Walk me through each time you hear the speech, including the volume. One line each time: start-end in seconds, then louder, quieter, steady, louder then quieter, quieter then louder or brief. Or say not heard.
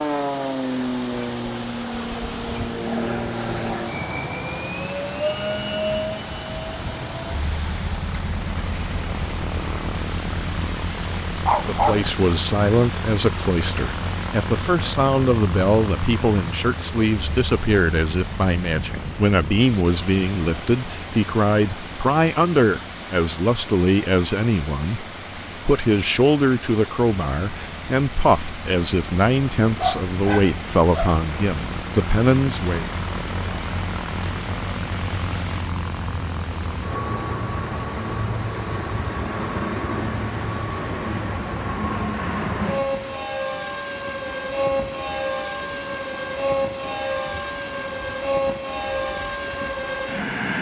11.7-32.9 steady.